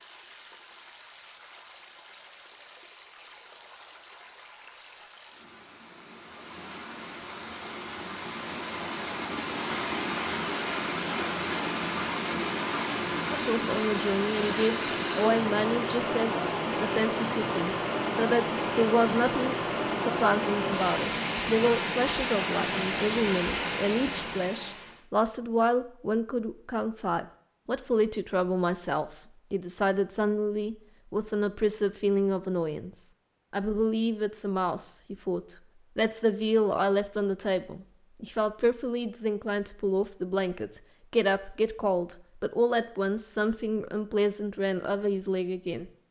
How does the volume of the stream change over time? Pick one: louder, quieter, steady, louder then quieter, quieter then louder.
louder.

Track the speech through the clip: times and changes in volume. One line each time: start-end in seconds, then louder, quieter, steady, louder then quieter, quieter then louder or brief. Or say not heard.
13.3-45.9 steady.